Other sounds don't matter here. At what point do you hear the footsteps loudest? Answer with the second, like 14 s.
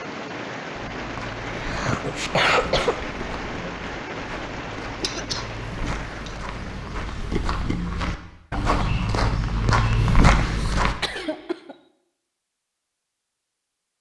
10 s.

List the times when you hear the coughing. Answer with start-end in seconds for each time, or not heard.
1.1-3.0, 5.0-6.3, 10.4-11.8.